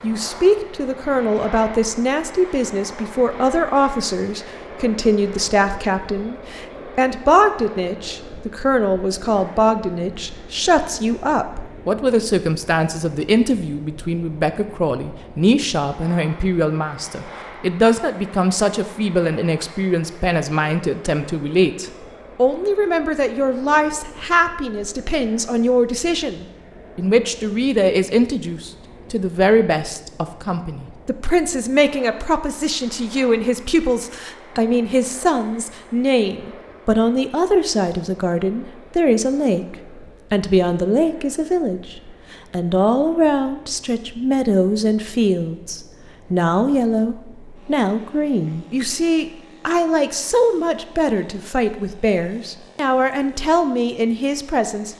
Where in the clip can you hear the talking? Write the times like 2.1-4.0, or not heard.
0.0-54.9.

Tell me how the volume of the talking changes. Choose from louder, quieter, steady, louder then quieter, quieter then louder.
steady.